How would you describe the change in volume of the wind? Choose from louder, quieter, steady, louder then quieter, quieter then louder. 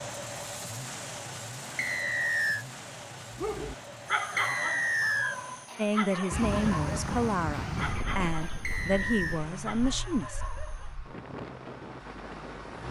quieter then louder.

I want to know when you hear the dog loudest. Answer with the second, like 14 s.
4 s.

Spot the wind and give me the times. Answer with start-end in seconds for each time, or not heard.
6.3-12.8.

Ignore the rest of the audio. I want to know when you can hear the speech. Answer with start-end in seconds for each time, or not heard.
5.8-10.4.